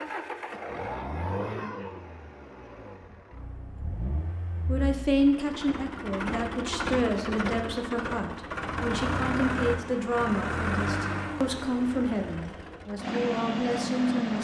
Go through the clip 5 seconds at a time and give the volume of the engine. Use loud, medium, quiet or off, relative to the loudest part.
medium, loud, loud.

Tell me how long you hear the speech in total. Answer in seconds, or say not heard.
10 s.